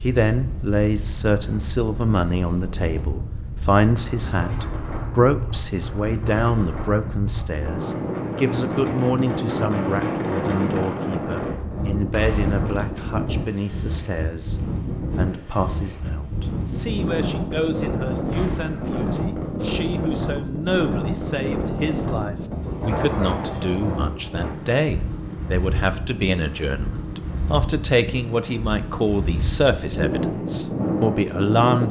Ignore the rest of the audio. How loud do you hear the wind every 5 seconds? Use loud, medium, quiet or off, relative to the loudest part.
medium, loud, loud, loud, loud, medium, loud.